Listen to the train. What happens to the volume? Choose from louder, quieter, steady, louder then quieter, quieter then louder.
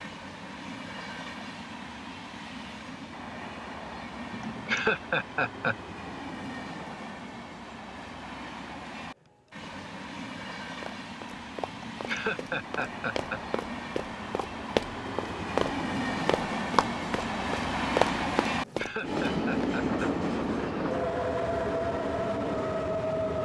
louder.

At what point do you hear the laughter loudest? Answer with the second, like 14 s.
5 s.